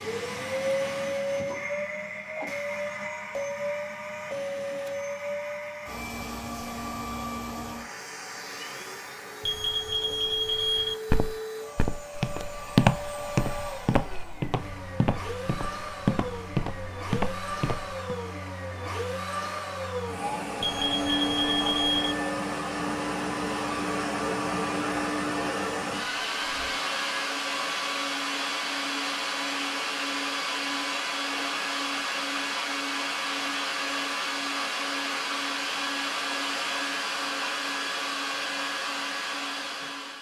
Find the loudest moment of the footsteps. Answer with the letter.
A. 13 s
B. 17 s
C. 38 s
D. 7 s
A.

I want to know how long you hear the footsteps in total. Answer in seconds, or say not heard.
7 s.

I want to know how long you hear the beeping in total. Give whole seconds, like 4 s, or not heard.
3 s.